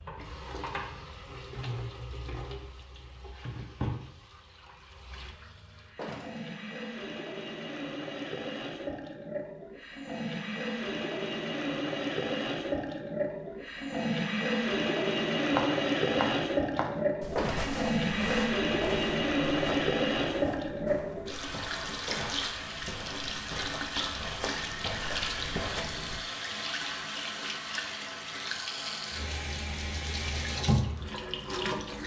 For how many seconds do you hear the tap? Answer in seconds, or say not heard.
32 s.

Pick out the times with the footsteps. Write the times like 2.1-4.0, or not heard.
15.5-26.2.